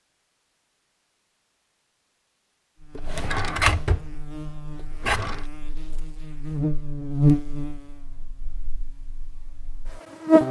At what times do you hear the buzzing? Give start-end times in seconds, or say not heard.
2.8-10.4.